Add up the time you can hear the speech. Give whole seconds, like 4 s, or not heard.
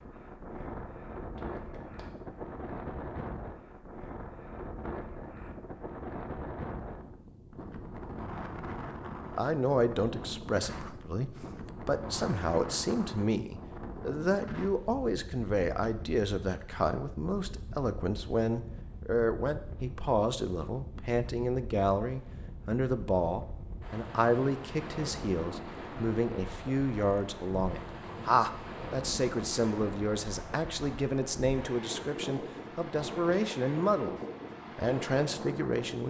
26 s.